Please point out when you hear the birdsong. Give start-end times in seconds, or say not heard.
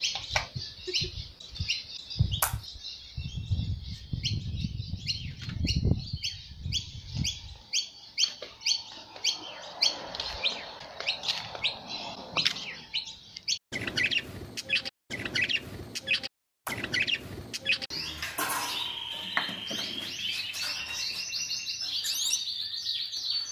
0.0-23.4.